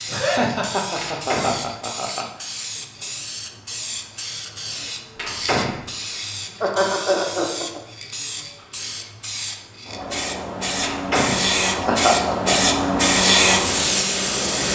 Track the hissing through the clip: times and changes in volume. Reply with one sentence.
The hissing can be heard from 0.0 to 14.7 s, getting louder.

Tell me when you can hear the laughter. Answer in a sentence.
The laughter can be heard from 0.1 to 2.5 s, from 6.6 to 7.8 s and from 11.7 to 12.6 s.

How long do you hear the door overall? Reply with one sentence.
You can hear the door for 2 seconds altogether.